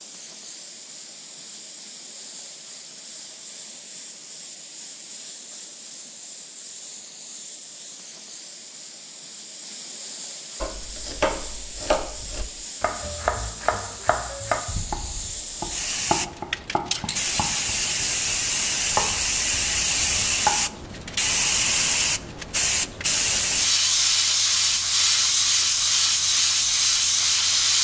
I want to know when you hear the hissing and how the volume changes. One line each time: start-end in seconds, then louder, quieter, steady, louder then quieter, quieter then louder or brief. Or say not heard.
0.0-27.7 louder.